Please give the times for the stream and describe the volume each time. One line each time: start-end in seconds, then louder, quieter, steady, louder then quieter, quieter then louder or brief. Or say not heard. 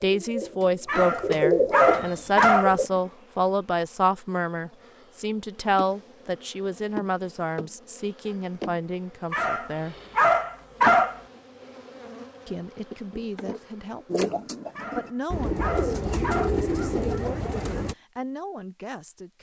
not heard.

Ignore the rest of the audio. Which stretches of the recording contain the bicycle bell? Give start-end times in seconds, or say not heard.
not heard.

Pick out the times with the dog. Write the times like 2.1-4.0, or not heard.
0.8-2.8, 9.3-11.2, 14.8-16.6.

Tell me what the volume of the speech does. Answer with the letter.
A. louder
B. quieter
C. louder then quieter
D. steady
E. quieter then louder
B.